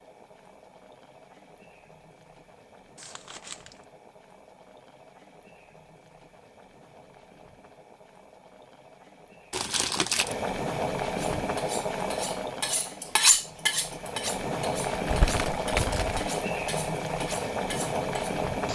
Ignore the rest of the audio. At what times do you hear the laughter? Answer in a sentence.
The laughter can't be heard in this clip.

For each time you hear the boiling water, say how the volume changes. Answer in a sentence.
You can hear the boiling water from 0.0 to 18.7 s, getting louder.